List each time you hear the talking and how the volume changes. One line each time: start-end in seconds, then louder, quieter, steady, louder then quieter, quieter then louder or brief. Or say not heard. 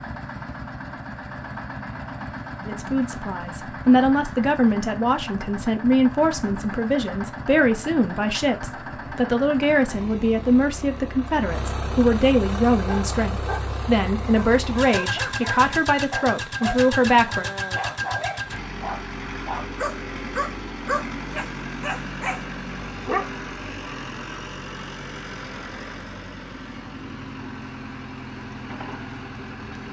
2.6-17.4 steady.